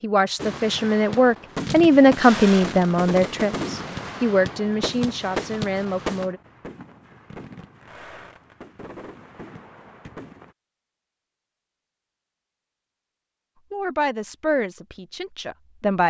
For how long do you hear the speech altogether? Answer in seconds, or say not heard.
9 s.